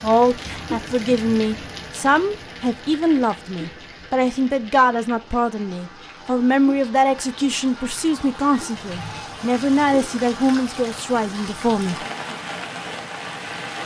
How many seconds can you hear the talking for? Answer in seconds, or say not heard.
12 s.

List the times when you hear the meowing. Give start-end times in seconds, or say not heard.
not heard.